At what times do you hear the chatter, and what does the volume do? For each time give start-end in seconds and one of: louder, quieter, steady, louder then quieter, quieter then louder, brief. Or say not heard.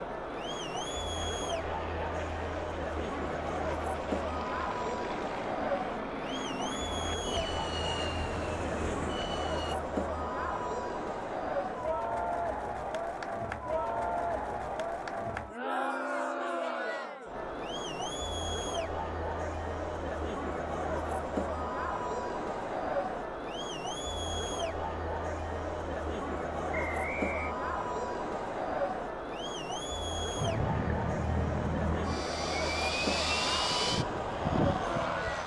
0.0-35.4 steady.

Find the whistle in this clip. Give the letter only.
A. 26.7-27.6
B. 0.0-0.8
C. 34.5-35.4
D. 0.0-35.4
A.